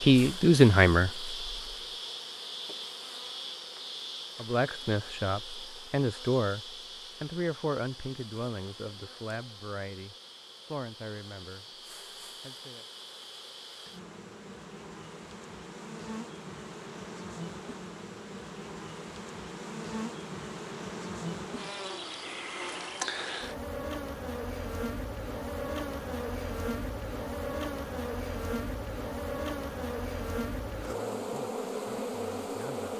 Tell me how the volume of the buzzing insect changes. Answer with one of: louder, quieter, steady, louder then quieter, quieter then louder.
quieter then louder.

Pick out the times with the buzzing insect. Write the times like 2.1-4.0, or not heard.
0.0-32.9.